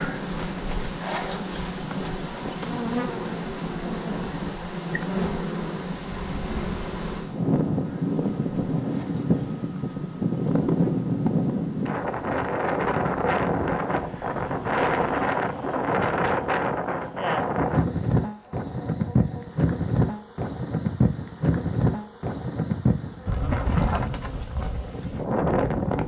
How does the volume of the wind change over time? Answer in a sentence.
The loudness of the wind goes up.